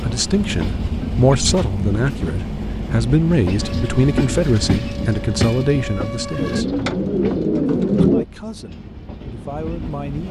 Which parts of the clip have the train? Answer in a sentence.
You can hear the train from 0.0 to 10.2 s.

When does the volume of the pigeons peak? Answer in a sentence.
The loudest moment of the pigeons is at 8 seconds.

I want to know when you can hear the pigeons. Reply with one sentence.
The pigeons can be heard from 6.3 to 8.2 s.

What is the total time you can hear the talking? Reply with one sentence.
You can hear the talking for 9 seconds altogether.